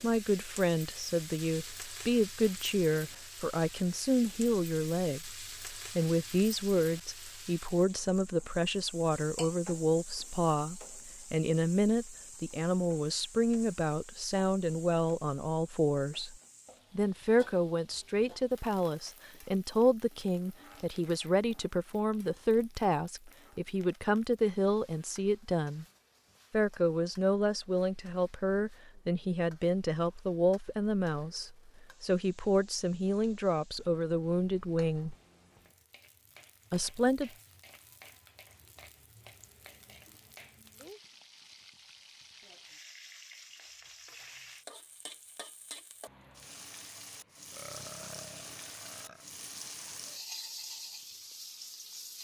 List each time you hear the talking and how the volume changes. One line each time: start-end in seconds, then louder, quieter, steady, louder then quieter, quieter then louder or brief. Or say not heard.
0.0-16.4 steady
16.9-25.9 steady
26.5-35.1 steady
36.7-37.3 brief.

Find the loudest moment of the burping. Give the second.
48 s.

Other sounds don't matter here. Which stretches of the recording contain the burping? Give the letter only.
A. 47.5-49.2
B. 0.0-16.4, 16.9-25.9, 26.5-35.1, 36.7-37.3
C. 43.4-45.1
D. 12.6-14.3
A.